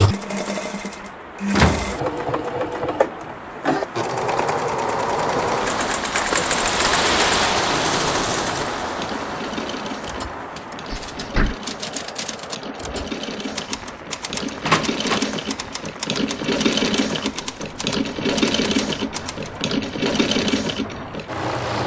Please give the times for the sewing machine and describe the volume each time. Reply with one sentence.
The sewing machine can be heard from 0.0 to 21.8 s, getting quieter then louder.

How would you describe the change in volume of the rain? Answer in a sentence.
The volume of the rain goes up, then down.